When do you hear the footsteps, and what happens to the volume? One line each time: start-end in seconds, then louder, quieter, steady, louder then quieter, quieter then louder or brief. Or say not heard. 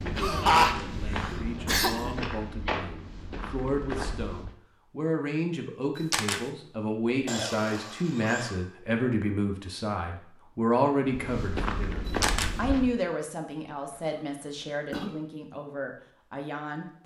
0.0-4.5 steady
11.1-12.9 brief.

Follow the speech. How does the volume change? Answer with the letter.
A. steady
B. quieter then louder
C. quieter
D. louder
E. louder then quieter
E.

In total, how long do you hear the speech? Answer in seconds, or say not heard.
17 s.